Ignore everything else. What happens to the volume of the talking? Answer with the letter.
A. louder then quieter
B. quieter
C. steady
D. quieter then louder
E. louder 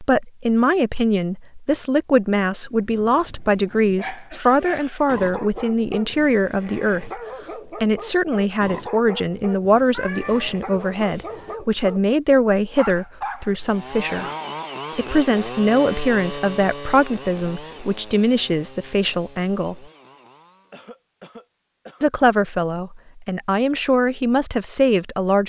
C.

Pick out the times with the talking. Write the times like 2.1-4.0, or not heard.
0.0-14.2, 14.9-19.9, 22.0-25.4.